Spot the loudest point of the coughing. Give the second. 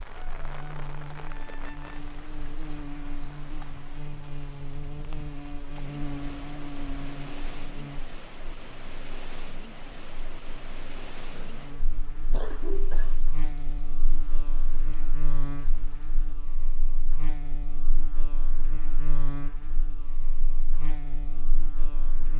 13 s.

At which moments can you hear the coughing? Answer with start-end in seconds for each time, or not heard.
11.3-13.2.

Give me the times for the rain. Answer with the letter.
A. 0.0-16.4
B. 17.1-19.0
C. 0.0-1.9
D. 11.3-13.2
A.